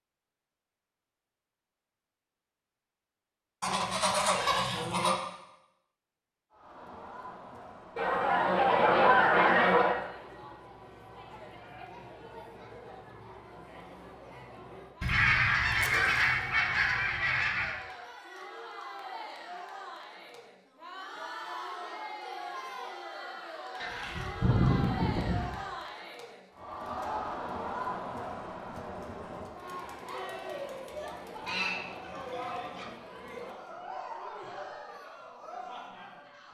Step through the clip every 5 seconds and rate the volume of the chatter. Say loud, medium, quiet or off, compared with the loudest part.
off, medium, medium, medium, loud, loud, loud, medium.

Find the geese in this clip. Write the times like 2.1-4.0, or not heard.
3.6-5.2, 8.0-9.9, 15.0-17.8, 23.8-25.6, 31.4-32.9.